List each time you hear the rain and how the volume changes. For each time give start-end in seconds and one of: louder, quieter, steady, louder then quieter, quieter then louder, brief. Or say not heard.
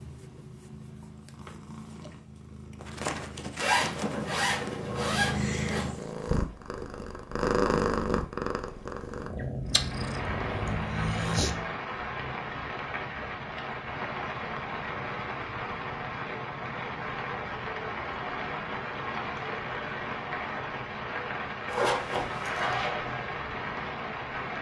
9.7-24.5 steady.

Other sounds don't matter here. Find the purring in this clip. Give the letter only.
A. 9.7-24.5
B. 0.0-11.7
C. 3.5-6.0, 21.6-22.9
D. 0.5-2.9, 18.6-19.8
B.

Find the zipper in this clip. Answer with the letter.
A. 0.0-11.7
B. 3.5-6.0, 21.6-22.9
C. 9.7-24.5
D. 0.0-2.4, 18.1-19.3
B.